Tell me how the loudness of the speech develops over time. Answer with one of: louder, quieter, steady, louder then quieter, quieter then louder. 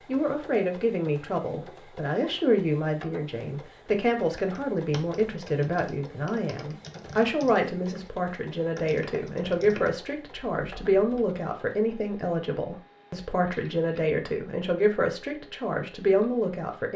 steady.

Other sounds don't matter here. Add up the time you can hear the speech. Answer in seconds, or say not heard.
17 s.